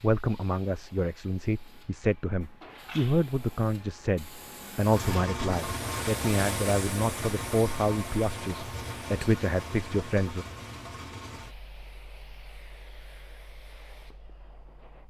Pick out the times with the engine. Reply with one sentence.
The engine can be heard from 4.8 to 15.0 s.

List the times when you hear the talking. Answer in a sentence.
You can hear the talking from 0.0 to 10.4 s.